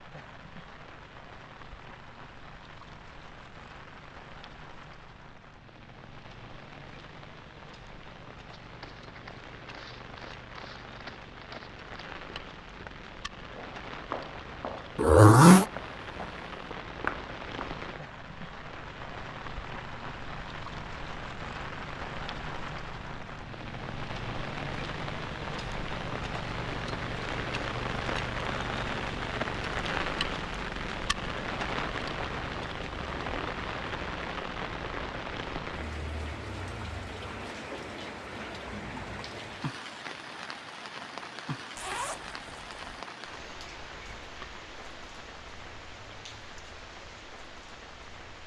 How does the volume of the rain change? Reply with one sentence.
The volume of the rain goes up, then down.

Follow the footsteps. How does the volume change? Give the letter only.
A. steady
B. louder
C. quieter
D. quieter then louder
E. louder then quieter
B.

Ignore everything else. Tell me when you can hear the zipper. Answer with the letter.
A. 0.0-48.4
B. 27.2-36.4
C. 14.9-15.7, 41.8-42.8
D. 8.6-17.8
C.